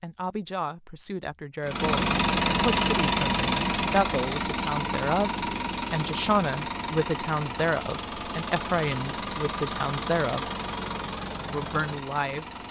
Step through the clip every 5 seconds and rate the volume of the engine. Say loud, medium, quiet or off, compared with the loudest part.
loud, medium, medium.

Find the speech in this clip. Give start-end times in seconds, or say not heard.
0.0-10.5, 11.4-12.4.